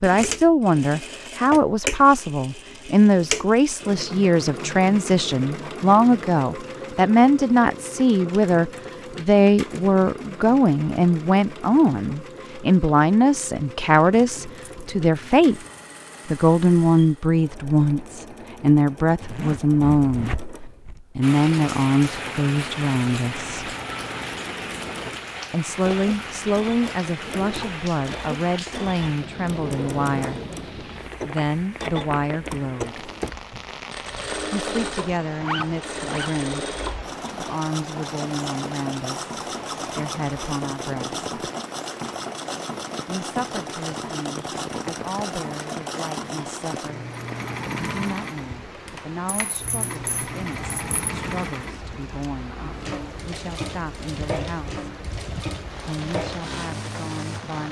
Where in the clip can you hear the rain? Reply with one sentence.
You can hear the rain from 21.2 to 57.6 s.